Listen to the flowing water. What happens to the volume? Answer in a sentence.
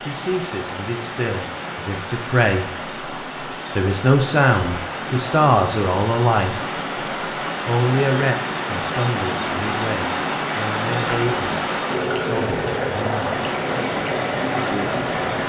The volume of the flowing water goes up.